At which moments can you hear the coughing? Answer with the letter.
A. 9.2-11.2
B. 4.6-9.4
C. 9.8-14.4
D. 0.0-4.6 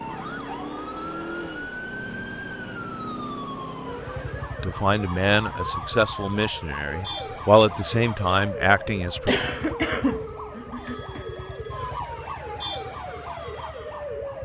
A.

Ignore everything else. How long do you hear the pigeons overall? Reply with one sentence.
You can't hear the pigeons here.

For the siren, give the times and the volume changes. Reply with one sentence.
You can hear the siren from 0.0 to 14.4 s, at a steady volume.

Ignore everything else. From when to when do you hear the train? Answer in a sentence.
You can hear the train from 0.0 to 4.6 s.